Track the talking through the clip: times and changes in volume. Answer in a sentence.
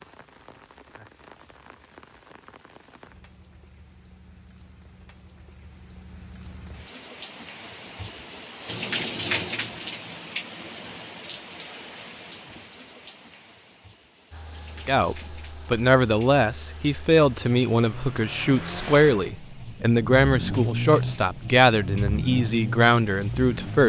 The talking can be heard from 14.8 to 23.8 s, at a steady volume.